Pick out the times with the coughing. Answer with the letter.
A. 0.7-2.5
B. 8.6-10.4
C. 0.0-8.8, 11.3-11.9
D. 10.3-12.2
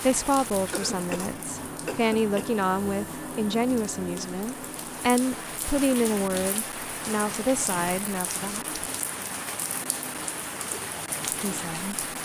A.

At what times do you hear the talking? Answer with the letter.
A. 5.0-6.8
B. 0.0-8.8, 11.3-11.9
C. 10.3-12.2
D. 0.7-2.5
B.